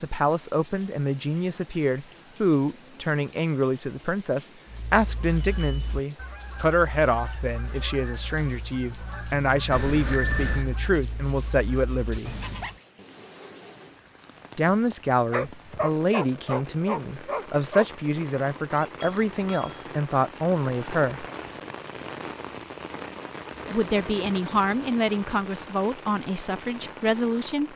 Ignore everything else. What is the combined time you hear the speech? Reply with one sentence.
The speech can be heard for 23 seconds in total.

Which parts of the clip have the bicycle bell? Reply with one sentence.
You can hear the bicycle bell from 5.3 to 6.0 s, from 9.7 to 10.7 s and from 19.0 to 19.9 s.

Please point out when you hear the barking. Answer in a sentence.
You can hear the barking from 15.3 to 17.9 s.